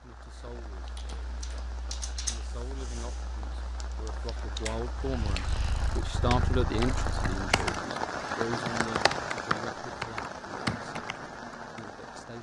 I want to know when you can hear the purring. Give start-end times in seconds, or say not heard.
5.0-7.6.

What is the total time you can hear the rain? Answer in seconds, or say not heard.
12 s.